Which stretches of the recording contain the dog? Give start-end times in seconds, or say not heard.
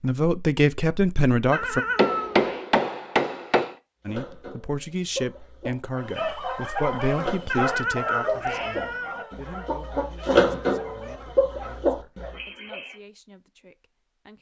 5.9-13.0.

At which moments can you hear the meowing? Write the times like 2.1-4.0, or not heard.
1.5-2.6, 7.5-9.2.